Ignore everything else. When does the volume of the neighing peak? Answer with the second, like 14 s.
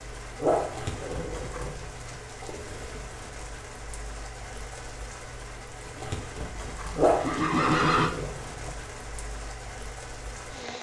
8 s.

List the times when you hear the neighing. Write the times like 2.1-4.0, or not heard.
6.0-8.1.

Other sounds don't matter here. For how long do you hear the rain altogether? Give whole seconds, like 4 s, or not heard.
11 s.